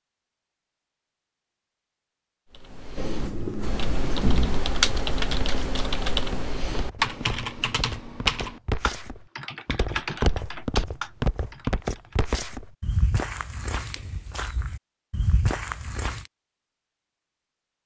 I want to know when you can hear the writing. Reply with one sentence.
The writing can be heard from 3.0 to 4.7 s.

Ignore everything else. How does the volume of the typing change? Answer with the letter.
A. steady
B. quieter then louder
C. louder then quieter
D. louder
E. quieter
C.